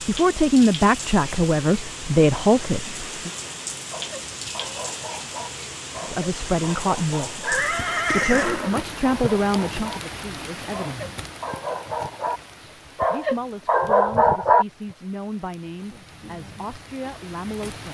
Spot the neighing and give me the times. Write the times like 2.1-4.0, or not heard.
7.4-9.3.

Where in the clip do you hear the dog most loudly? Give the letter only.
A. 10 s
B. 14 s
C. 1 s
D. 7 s
B.